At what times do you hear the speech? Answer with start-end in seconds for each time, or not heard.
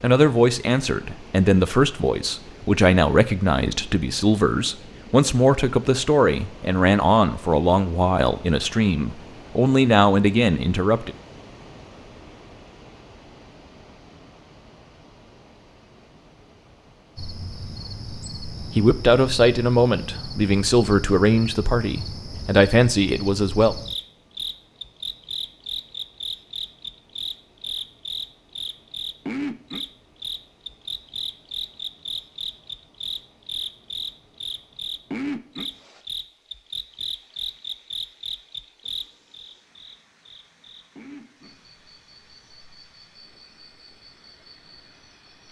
0.0-11.1, 18.8-23.8.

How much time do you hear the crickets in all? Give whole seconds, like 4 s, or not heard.
28 s.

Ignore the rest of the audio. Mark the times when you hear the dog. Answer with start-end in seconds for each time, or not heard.
not heard.